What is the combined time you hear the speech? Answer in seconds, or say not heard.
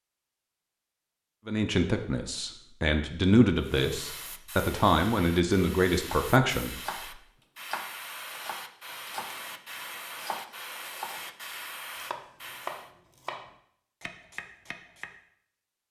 5 s.